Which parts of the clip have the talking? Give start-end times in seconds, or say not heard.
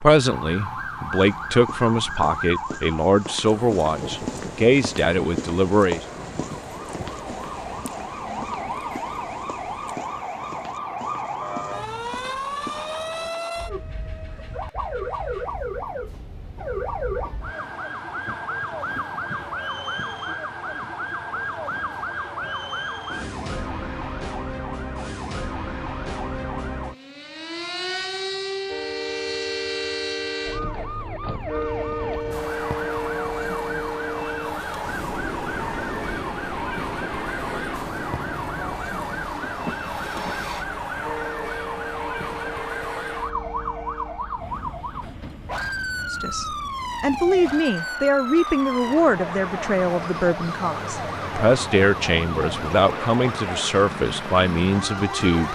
0.0-6.0, 46.1-55.5.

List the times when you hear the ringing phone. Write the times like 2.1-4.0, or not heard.
not heard.